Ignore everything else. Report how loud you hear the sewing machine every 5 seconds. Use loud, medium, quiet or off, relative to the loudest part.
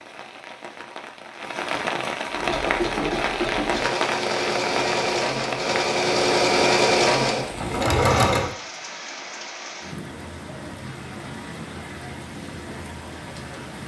medium, loud, off.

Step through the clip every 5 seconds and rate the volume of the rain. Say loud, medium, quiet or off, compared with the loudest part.
loud, medium, medium.